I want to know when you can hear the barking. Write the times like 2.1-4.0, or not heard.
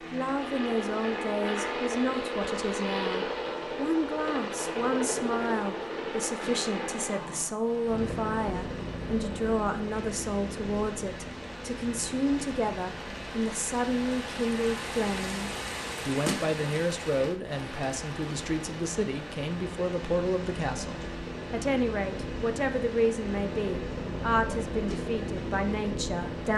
not heard.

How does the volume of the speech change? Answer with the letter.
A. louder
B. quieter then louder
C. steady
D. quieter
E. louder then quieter
C.